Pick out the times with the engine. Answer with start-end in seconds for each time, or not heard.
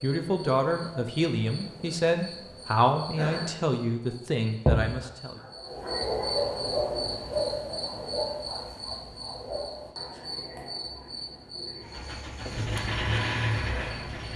11.8-14.3.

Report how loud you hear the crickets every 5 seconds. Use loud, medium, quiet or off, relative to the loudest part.
loud, loud, medium.